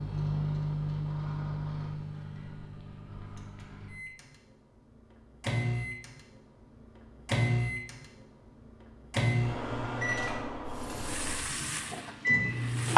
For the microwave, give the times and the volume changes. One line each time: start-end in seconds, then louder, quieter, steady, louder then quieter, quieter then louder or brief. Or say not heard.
0.0-12.9 quieter then louder.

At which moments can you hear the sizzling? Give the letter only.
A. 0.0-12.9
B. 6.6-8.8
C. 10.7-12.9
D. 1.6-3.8
C.